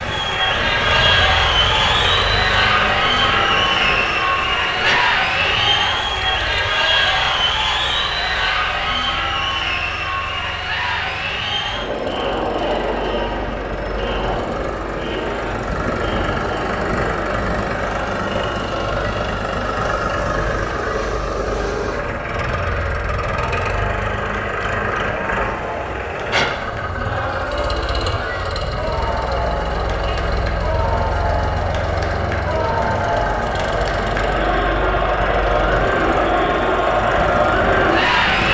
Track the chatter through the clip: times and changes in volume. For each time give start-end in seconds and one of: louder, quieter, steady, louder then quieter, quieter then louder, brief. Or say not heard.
0.0-38.4 quieter then louder.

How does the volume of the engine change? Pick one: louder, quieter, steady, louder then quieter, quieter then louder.
quieter then louder.